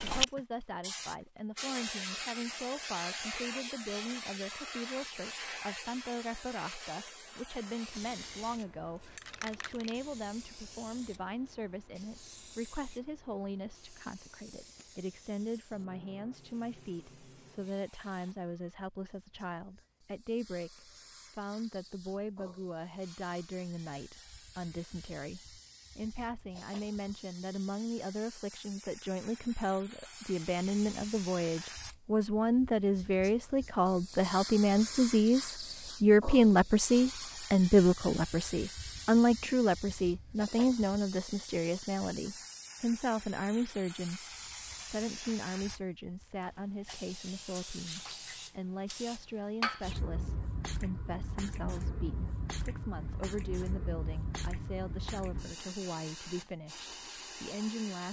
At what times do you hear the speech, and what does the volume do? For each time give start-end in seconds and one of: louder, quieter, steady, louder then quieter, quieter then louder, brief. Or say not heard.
0.0-58.0 louder then quieter.